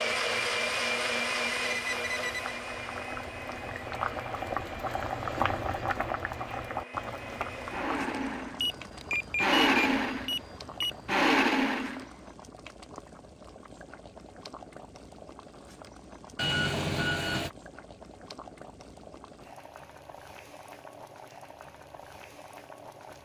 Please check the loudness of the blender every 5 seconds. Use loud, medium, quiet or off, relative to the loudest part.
medium, loud, loud, off, off.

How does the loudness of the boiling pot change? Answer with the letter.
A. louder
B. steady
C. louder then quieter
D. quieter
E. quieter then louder
D.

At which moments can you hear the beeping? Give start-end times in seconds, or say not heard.
1.6-2.4, 8.6-11.2, 16.4-17.5.